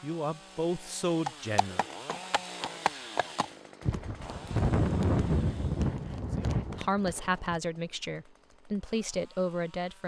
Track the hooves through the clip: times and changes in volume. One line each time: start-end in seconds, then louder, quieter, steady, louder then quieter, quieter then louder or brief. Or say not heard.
1.2-7.6 louder then quieter.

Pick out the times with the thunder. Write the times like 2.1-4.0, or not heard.
4.1-6.9.